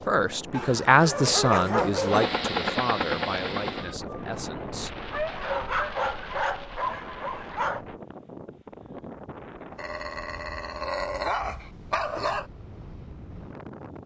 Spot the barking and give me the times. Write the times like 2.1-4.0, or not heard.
0.5-2.4, 5.1-7.8, 9.8-12.4.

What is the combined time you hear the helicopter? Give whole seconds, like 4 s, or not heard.
2 s.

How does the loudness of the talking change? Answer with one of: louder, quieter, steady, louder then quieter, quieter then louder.
quieter.